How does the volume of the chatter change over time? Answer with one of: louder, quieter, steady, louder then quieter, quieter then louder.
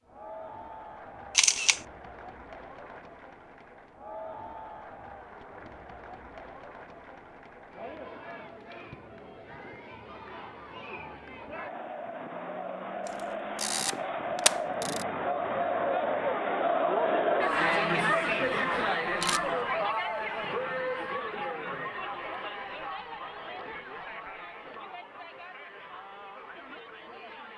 louder then quieter.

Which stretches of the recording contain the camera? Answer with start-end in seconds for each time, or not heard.
1.4-1.8, 13.1-15.1, 19.1-19.5.